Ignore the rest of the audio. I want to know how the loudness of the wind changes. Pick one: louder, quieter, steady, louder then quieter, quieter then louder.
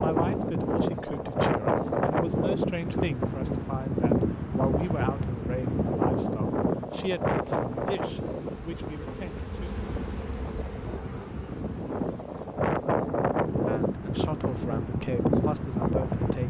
quieter then louder.